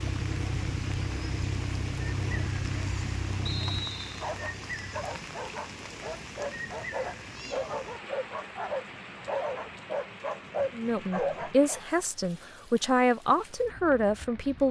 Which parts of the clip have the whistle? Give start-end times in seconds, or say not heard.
3.5-4.3.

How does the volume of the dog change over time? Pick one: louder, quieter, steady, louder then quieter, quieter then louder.
louder.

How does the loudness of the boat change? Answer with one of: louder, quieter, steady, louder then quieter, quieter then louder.
quieter.